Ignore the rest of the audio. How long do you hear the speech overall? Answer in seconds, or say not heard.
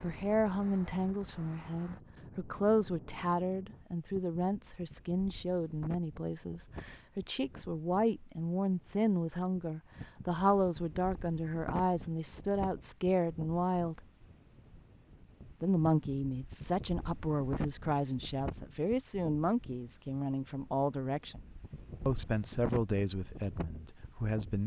22 s.